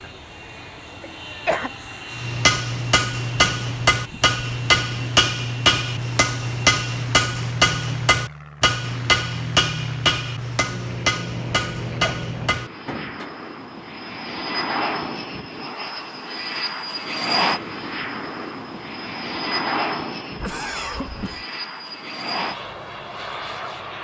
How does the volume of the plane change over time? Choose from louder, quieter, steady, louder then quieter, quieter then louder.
louder.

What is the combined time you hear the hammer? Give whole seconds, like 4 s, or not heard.
11 s.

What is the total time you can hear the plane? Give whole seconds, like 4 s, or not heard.
24 s.